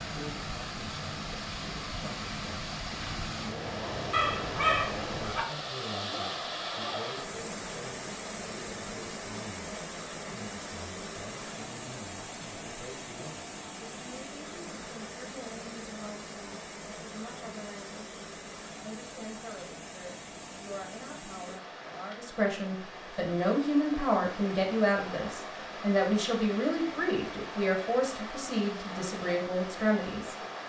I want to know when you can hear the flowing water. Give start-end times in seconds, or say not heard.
0.0-30.6.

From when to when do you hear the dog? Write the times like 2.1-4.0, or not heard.
4.1-5.4.